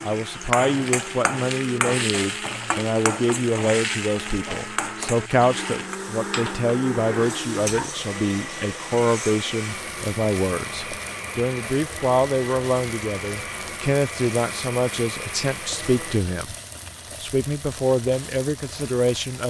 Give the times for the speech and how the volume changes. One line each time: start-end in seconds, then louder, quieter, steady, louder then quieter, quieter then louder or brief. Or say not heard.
0.0-16.6 steady
17.2-19.4 brief.